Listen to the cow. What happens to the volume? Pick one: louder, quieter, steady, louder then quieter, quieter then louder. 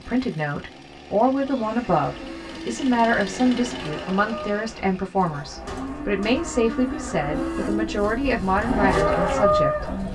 louder.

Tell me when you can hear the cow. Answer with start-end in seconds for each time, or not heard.
1.5-10.1.